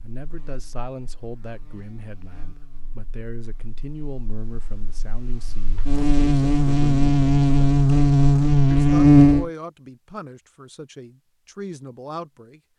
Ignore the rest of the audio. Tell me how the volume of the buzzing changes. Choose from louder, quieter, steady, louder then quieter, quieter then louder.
louder.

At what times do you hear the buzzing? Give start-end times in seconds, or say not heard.
0.1-9.5.